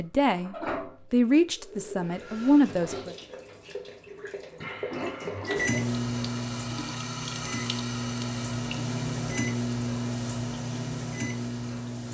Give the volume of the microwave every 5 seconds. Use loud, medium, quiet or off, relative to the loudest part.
off, loud, loud.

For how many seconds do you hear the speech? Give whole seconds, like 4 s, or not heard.
3 s.